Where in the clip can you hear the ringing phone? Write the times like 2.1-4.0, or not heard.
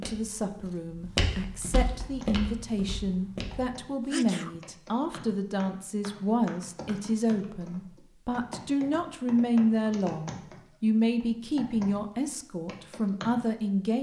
not heard.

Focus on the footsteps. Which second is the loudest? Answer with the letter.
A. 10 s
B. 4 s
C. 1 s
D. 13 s
C.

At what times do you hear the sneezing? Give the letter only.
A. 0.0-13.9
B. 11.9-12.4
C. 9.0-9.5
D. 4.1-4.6
D.